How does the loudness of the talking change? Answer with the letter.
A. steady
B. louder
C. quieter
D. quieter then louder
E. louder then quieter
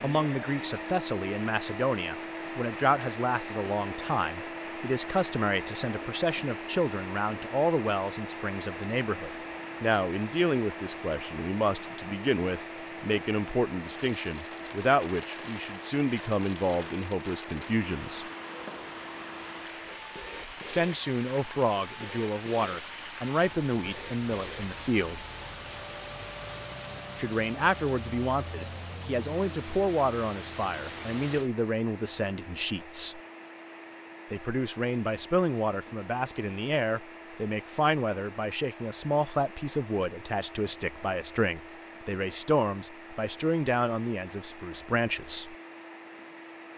A.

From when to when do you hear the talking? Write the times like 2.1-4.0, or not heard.
0.0-18.2, 20.6-25.2, 27.1-33.2, 34.3-45.5.